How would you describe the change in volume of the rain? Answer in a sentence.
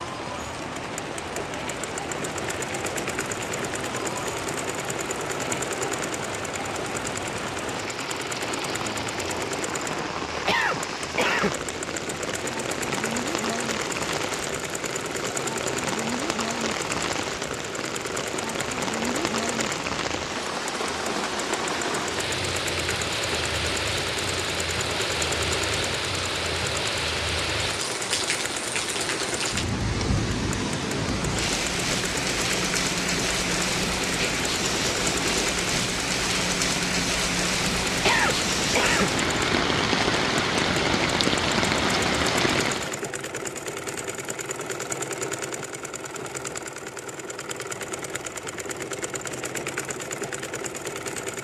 The volume of the rain goes up.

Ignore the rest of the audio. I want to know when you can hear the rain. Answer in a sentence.
You can hear the rain from 0.0 to 43.0 s.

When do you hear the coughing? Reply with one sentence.
You can hear the coughing from 10.4 to 11.6 s and from 38.0 to 39.1 s.